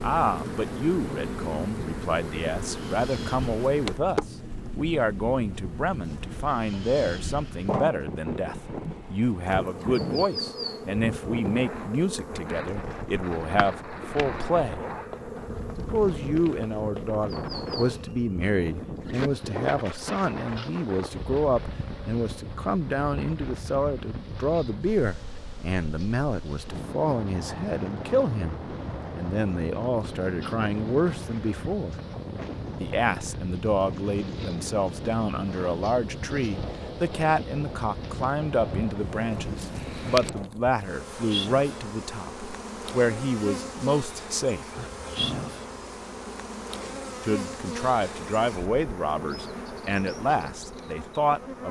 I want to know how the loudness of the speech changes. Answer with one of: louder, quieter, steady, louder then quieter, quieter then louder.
steady.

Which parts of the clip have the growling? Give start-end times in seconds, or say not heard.
44.8-45.6.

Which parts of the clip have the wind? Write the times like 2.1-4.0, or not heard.
0.0-40.5.